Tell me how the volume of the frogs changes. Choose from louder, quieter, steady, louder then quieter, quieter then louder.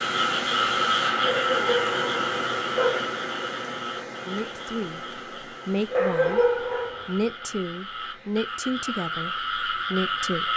quieter then louder.